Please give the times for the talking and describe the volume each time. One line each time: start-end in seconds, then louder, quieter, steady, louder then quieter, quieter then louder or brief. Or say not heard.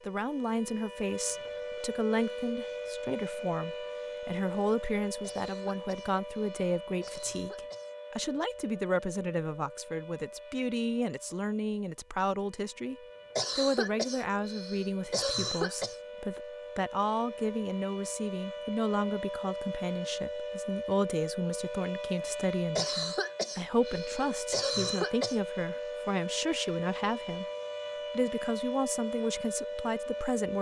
0.1-12.9 steady
13.6-27.4 steady
28.1-30.5 brief.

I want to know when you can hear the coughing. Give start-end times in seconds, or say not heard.
5.2-8.0, 13.3-15.9, 22.8-25.4.